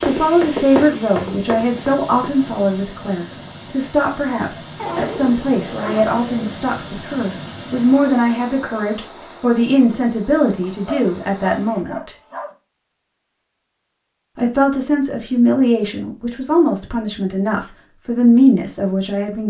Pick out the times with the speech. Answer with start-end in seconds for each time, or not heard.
0.0-12.2, 14.3-19.4.